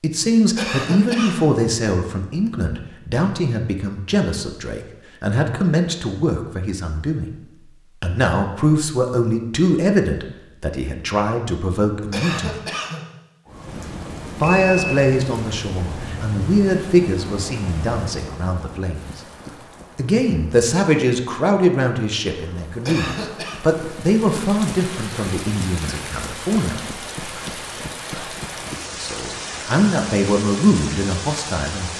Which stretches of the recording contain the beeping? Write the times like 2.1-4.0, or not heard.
14.4-15.0.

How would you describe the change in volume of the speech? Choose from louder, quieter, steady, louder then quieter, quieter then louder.
steady.